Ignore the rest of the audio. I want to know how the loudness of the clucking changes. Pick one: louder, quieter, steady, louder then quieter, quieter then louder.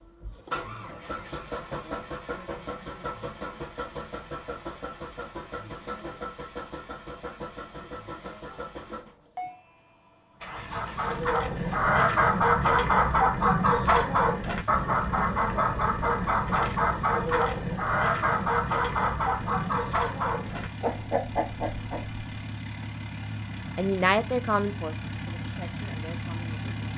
quieter.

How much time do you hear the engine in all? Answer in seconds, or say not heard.
27 s.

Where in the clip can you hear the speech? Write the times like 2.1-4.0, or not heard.
23.8-26.9.